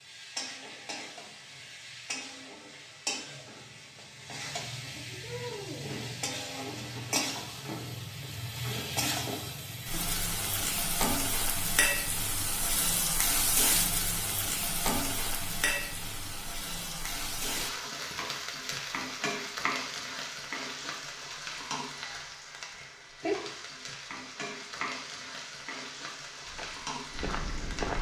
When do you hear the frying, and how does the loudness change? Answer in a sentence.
The frying can be heard from 0.0 to 27.9 s, getting louder then quieter.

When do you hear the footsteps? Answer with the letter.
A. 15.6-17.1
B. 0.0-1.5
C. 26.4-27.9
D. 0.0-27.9
C.